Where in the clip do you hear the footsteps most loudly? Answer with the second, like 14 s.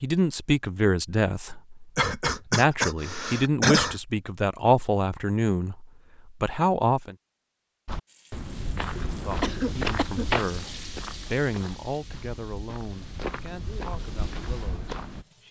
10 s.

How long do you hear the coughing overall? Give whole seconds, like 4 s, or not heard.
3 s.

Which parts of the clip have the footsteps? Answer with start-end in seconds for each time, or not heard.
7.8-15.2.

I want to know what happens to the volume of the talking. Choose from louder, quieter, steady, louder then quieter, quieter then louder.
quieter.